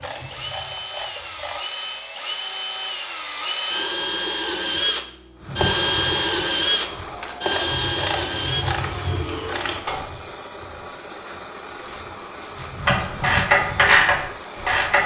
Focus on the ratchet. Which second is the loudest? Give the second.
14 s.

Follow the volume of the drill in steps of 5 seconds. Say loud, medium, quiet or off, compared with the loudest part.
medium, loud, off.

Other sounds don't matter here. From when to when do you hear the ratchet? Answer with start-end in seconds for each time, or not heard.
0.0-1.6, 7.4-10.1, 12.8-15.0.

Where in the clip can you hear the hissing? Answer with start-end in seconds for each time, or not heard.
5.3-15.0.